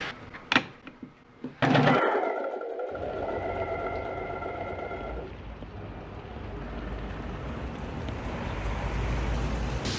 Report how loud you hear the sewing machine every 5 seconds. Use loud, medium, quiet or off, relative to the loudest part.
loud, quiet.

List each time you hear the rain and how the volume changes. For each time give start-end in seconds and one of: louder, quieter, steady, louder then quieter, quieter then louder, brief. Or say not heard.
2.9-9.9 louder.